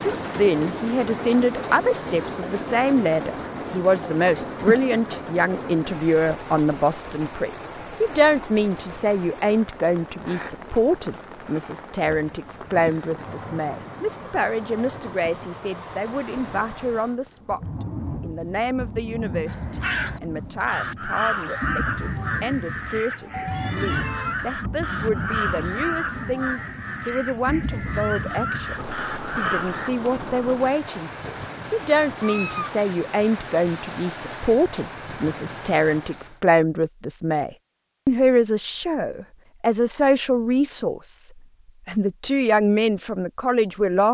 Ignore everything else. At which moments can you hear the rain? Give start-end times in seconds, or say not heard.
0.0-36.4.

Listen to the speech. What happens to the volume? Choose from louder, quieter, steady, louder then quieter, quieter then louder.
quieter then louder.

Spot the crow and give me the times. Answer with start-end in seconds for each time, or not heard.
19.4-29.9.